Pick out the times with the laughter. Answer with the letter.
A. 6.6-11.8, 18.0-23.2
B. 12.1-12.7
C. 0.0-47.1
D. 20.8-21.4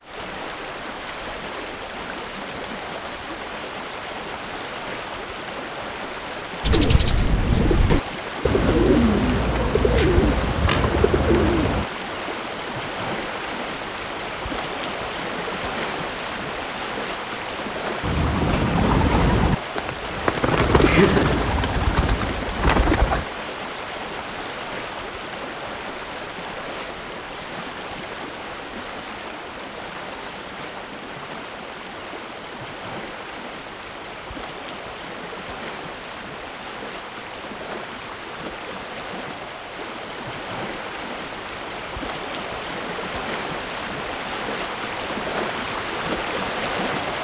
D.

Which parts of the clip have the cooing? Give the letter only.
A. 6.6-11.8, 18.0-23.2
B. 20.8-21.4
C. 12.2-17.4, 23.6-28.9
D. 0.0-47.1
A.